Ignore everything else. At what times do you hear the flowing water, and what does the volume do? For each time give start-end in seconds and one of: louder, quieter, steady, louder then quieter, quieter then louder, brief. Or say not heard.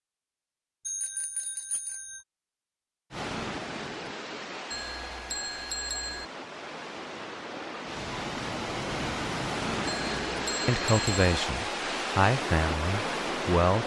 3.1-13.8 louder.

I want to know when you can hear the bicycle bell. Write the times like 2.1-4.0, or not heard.
0.8-2.2, 4.7-6.2, 9.8-11.3.